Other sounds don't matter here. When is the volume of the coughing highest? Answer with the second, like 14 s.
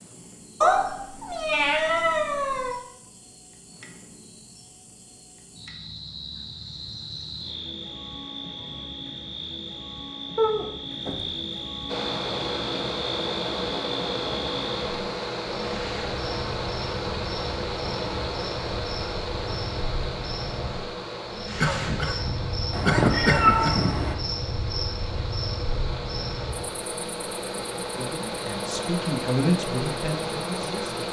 23 s.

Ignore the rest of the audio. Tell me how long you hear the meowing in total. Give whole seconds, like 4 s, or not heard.
5 s.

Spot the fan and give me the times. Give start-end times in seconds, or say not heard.
11.8-31.0.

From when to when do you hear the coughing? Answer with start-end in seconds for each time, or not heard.
21.6-23.9.